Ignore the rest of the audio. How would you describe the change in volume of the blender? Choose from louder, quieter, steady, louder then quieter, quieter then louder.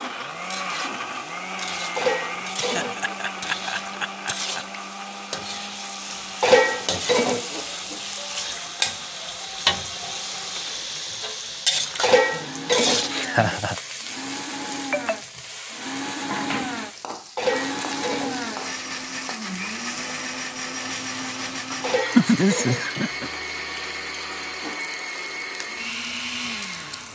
quieter then louder.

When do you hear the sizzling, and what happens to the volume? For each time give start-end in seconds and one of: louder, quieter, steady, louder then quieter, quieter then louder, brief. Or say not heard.
0.0-27.1 louder then quieter.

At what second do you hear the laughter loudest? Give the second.
22 s.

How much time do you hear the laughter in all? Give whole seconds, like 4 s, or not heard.
4 s.